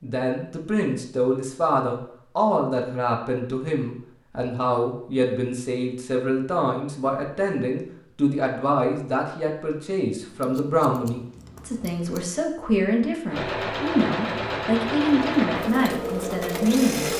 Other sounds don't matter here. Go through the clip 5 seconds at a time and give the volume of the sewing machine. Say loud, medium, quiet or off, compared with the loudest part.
off, off, loud, loud.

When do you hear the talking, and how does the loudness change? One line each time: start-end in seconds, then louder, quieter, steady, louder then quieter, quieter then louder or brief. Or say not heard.
0.0-17.1 steady.